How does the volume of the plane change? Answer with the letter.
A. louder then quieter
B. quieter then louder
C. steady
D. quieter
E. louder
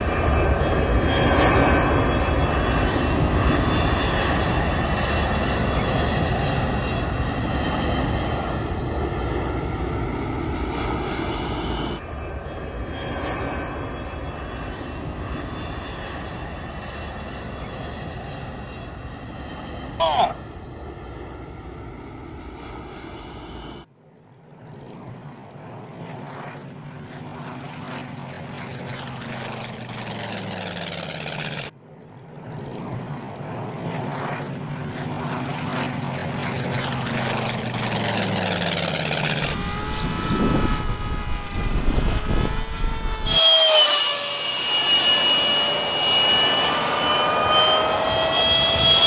B.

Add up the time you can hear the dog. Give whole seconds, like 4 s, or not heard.
not heard.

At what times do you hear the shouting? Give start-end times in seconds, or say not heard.
19.9-20.4.